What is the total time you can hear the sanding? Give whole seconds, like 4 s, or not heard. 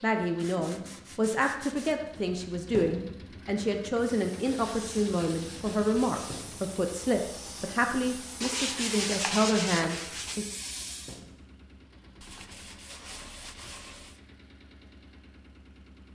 8 s.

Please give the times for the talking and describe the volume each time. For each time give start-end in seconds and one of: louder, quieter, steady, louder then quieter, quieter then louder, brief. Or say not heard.
0.0-10.4 steady.